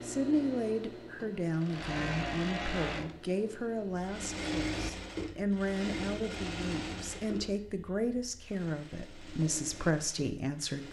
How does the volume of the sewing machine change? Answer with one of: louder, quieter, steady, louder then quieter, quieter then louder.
quieter.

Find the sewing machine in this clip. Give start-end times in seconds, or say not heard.
0.0-10.8.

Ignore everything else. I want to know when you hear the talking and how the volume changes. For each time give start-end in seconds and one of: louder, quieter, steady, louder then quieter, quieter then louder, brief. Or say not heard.
0.1-10.8 steady.